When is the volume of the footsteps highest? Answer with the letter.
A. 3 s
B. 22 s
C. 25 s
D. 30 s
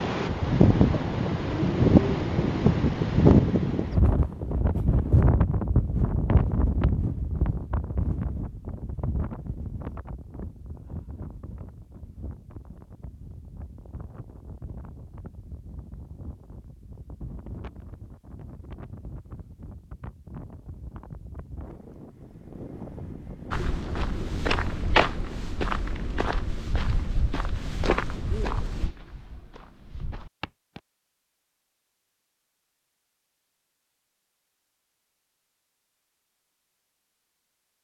C.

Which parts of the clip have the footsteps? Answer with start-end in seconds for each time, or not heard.
23.5-30.8.